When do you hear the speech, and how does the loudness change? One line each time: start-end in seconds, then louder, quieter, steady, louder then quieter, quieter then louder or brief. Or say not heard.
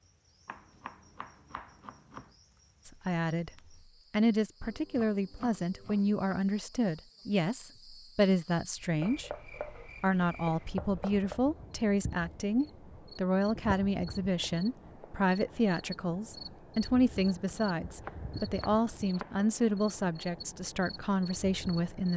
2.9-3.5 brief
4.1-22.1 steady.